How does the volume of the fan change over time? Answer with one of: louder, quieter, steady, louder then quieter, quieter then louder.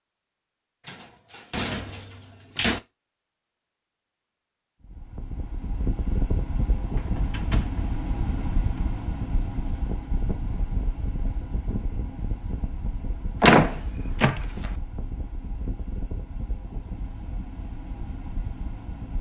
quieter.